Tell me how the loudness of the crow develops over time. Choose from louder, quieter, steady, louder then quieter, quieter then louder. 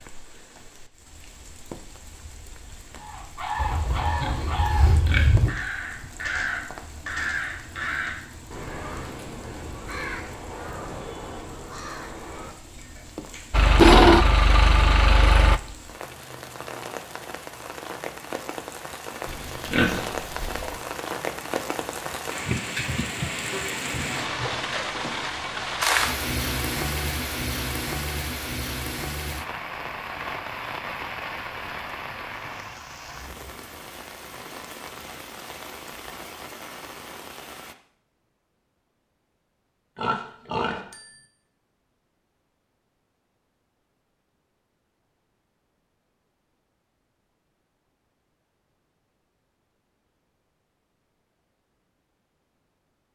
quieter.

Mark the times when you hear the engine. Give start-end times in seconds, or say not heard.
13.5-15.6.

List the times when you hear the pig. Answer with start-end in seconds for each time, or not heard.
3.5-5.5, 19.2-20.8, 40.0-41.1.